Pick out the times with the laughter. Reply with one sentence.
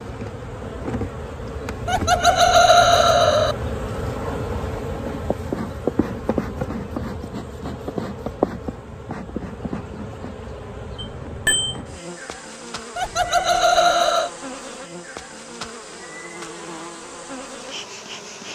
You can hear the laughter from 1.9 to 3.5 s and from 12.9 to 14.3 s.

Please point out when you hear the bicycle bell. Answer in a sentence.
The bicycle bell can be heard from 10.9 to 11.8 s.